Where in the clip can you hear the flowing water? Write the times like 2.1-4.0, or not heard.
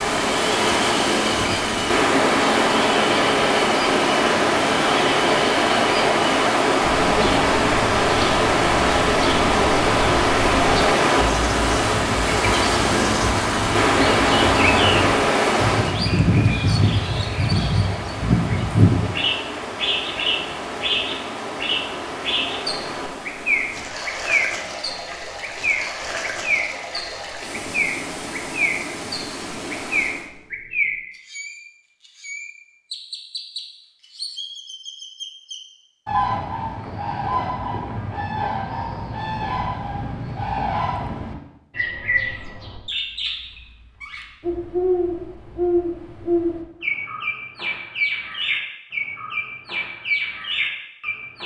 0.0-30.3.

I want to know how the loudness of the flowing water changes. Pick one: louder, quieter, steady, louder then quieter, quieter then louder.
quieter.